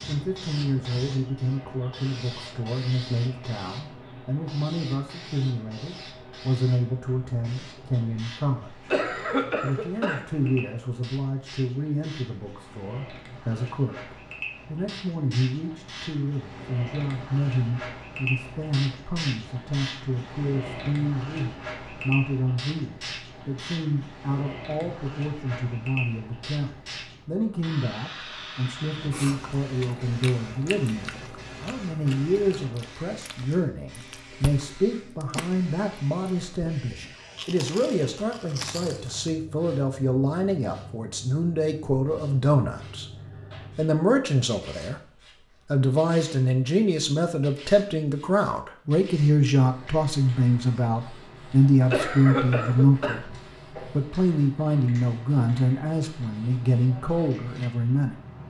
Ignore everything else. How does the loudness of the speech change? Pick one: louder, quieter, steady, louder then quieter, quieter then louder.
louder.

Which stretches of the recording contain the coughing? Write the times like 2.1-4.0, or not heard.
8.9-10.7, 51.9-53.1.